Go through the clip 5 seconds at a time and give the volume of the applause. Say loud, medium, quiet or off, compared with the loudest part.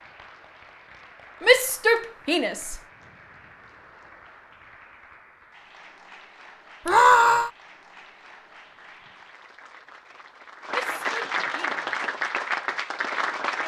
quiet, quiet, loud.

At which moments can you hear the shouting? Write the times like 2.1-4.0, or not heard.
1.4-2.8, 6.8-7.5, 10.7-11.8.